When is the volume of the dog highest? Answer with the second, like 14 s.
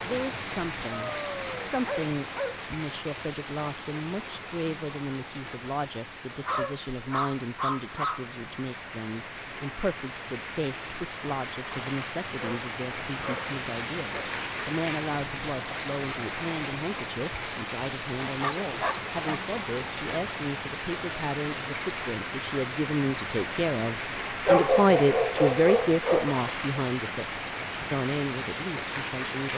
25 s.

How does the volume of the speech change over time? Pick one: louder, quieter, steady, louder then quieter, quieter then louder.
louder.